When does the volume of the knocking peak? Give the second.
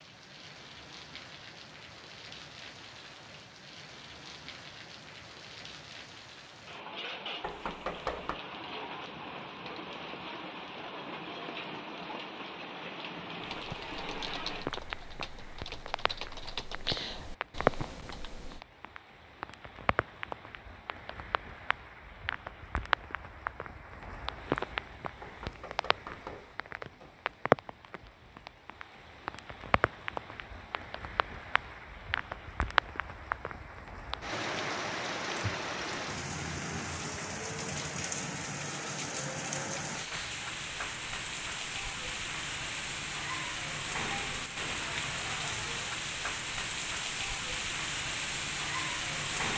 8 s.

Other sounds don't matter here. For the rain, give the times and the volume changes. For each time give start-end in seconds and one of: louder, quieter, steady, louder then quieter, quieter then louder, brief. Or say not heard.
0.0-49.5 louder.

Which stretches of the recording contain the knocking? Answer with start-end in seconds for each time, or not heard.
7.4-8.4, 25.2-26.6.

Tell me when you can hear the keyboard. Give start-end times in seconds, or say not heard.
13.4-18.6.